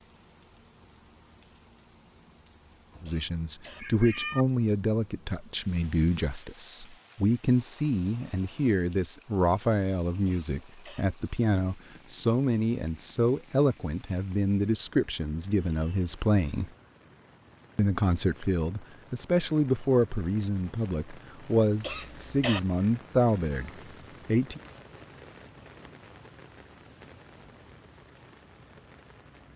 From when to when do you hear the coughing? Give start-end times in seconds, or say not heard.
3.0-3.9, 10.2-11.1, 21.8-22.6.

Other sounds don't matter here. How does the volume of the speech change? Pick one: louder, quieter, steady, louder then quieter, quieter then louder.
steady.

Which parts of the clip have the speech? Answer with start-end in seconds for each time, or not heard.
3.0-16.7, 17.8-24.6.